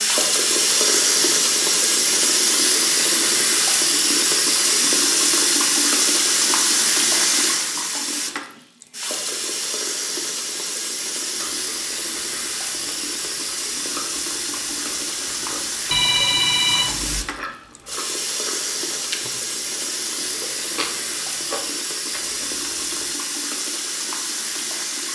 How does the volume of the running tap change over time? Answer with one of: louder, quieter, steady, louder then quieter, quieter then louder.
quieter.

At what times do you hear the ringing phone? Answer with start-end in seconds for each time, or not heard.
15.9-17.2.